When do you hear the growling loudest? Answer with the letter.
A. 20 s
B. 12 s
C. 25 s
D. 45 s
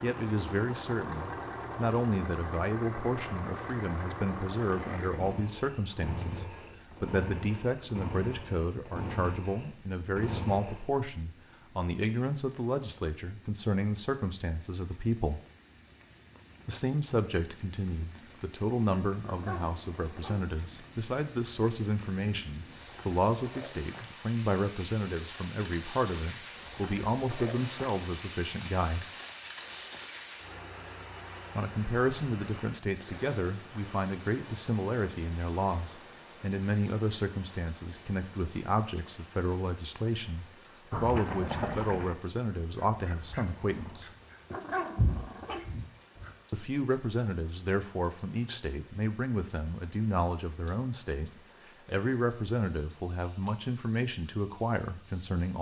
D.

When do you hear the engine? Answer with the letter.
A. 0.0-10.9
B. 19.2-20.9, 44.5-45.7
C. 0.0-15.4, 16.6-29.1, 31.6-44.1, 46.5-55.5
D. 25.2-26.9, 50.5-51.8
A.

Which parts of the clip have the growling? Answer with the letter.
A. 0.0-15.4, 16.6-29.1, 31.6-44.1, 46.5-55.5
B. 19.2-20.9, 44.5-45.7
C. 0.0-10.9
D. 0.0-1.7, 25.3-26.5
B.